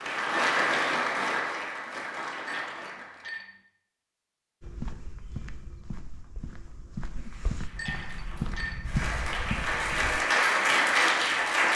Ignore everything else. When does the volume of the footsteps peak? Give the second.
9 s.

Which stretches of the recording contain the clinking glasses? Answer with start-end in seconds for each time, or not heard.
2.5-3.5, 7.8-8.8.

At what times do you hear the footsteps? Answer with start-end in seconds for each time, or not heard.
4.6-10.2.